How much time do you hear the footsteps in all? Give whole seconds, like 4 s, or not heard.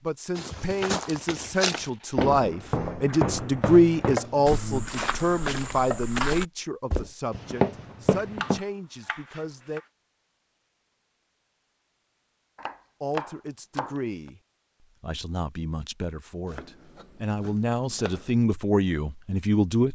8 s.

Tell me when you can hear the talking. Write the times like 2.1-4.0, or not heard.
0.0-9.8, 13.0-19.9.